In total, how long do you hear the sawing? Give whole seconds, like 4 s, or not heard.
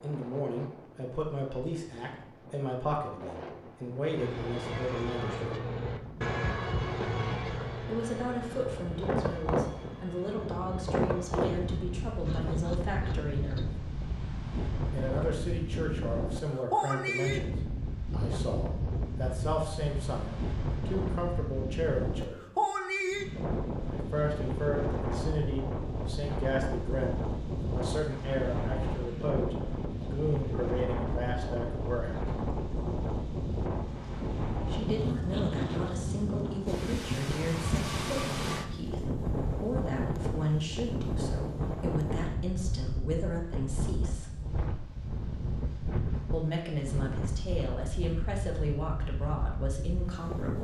10 s.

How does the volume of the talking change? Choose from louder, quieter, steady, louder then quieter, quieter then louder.
steady.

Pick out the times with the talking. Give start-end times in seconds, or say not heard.
0.0-5.7, 7.8-13.8, 14.9-22.6, 23.9-32.3, 34.6-44.4, 46.3-50.6.